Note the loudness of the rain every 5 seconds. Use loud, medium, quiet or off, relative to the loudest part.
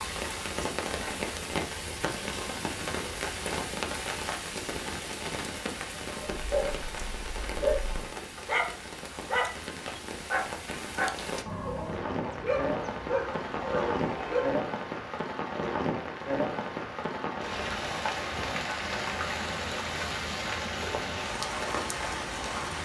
loud, medium, loud, loud, loud.